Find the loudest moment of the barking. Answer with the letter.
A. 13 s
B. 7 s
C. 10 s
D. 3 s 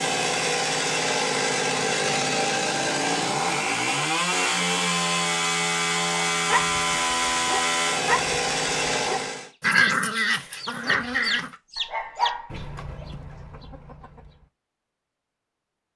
C.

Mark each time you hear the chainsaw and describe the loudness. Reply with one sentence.
The chainsaw can be heard from 0.0 to 9.5 s, at a steady volume.